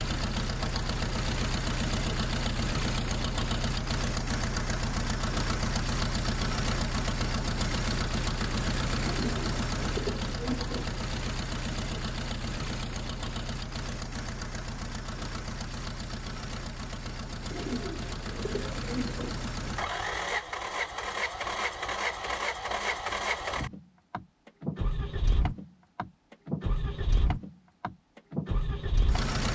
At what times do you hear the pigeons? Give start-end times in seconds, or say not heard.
9.0-10.8, 17.5-19.4.